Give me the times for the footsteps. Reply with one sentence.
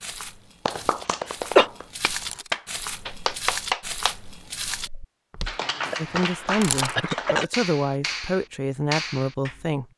You can hear the footsteps from 0.0 to 6.0 s.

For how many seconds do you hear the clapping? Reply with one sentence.
You can hear the clapping for 9 seconds altogether.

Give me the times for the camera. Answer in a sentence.
The camera can be heard from 2.0 to 2.5 s and from 6.4 to 7.1 s.